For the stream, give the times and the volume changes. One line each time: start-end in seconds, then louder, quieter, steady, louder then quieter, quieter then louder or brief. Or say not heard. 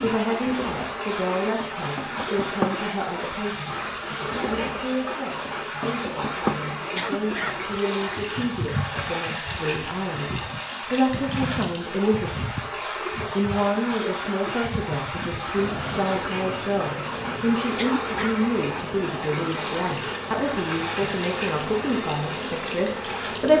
0.0-23.5 steady.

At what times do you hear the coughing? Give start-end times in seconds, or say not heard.
7.0-7.7, 17.8-18.4.